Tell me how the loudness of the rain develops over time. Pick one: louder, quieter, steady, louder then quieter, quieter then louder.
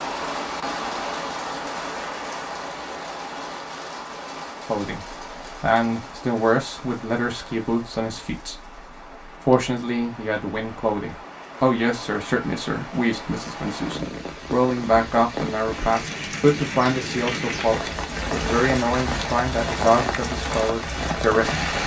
quieter then louder.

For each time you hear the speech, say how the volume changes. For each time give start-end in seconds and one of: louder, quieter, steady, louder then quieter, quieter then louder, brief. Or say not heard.
4.7-21.8 steady.